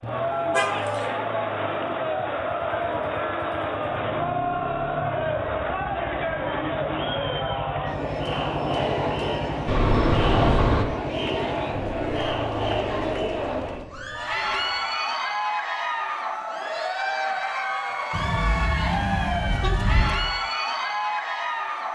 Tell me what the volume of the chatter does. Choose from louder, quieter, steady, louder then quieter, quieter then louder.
steady.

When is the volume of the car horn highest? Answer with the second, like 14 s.
10 s.